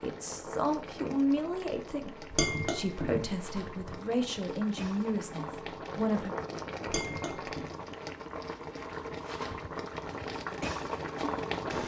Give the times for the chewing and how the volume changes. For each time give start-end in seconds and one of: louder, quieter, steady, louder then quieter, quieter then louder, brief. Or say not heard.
not heard.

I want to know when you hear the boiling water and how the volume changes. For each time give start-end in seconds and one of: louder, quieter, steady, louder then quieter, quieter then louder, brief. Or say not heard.
0.0-11.8 louder.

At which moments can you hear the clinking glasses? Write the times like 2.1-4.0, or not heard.
2.3-4.0, 6.8-7.8.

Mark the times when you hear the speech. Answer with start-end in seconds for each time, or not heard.
0.0-6.3.